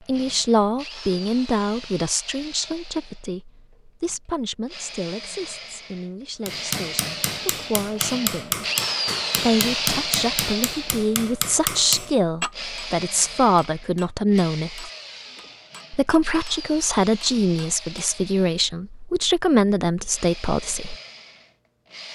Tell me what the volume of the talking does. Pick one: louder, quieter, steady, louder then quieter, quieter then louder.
quieter then louder.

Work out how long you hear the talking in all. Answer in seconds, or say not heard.
19 s.